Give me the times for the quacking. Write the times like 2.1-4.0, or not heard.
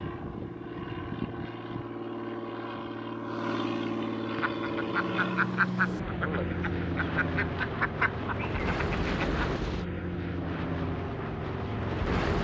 4.3-9.5.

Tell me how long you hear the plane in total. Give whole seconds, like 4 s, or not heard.
12 s.